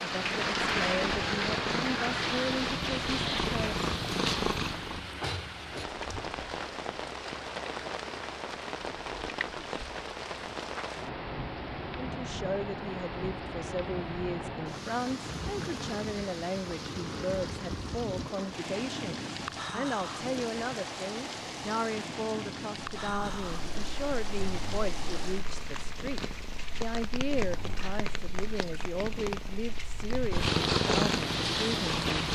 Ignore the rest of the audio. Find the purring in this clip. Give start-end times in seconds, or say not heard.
0.1-5.1, 23.1-32.3.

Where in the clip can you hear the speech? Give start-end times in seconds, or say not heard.
0.0-3.8, 11.9-32.3.